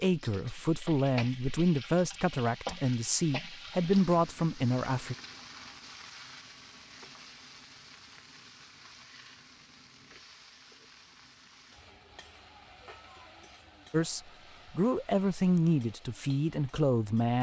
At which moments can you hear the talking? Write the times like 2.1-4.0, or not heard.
0.0-5.2, 13.9-17.3.